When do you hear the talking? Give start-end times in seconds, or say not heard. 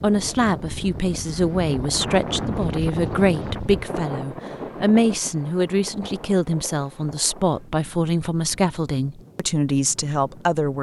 0.0-10.7.